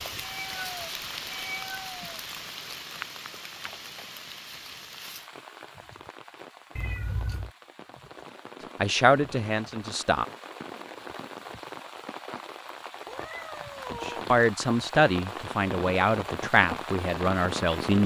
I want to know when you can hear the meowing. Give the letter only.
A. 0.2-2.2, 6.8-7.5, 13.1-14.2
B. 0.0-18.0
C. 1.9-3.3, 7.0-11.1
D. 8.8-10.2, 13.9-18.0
A.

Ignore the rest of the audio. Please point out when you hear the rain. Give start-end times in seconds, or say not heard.
0.0-18.0.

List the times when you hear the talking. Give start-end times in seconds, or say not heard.
8.8-10.2, 13.9-18.0.